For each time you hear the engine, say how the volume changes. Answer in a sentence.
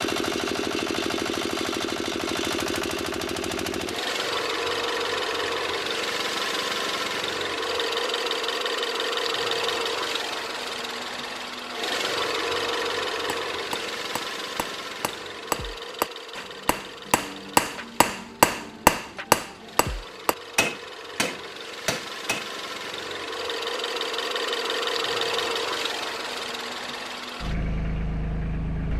The engine can be heard from 0.0 to 28.9 s, getting quieter then louder.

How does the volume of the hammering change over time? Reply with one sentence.
The loudness of the hammering goes up, then down.